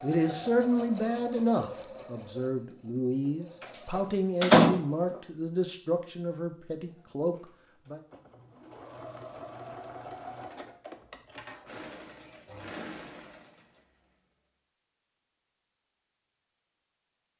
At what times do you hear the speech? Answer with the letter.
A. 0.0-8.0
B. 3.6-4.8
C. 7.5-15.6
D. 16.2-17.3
A.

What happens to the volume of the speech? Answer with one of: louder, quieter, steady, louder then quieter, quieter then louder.
quieter.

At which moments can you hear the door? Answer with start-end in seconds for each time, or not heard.
3.6-4.8.